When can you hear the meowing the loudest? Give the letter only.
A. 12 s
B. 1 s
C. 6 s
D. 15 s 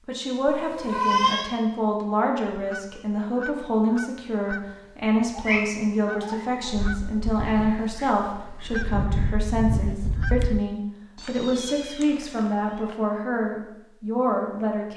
B.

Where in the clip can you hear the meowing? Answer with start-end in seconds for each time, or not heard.
0.5-1.5, 5.3-6.7, 11.2-12.9.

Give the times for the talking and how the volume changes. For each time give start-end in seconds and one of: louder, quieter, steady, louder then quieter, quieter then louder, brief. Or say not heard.
0.1-14.9 steady.